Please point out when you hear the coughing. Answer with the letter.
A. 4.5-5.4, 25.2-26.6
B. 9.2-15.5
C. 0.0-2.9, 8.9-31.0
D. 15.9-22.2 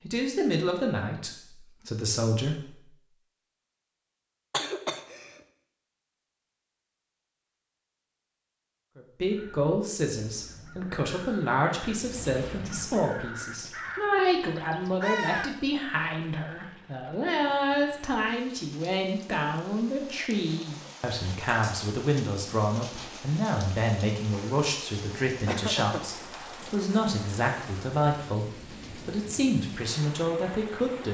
A.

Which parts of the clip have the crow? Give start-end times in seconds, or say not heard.
9.2-15.5.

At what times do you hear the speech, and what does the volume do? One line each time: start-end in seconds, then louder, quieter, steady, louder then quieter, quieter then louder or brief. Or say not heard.
0.0-2.9 brief
8.9-31.0 steady.